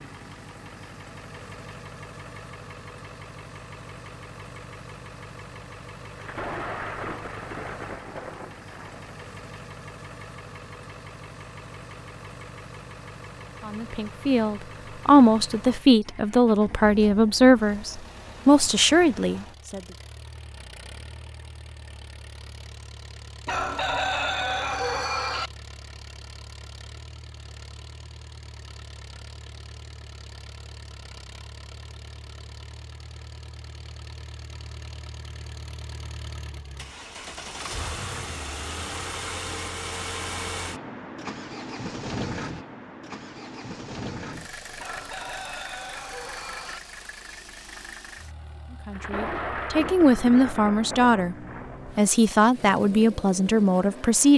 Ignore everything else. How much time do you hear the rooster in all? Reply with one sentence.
The rooster can be heard for 4 seconds in total.